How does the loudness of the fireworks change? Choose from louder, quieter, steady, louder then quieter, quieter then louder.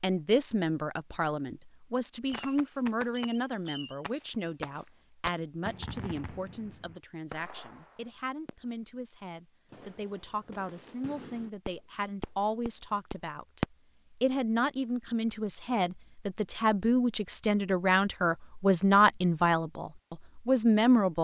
quieter then louder.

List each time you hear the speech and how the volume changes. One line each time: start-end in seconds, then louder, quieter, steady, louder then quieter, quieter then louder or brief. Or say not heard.
0.0-21.2 quieter then louder.